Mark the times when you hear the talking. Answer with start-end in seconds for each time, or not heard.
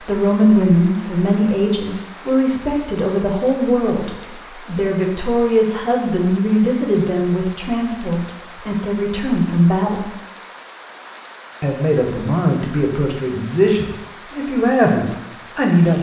0.0-10.1, 11.6-15.9.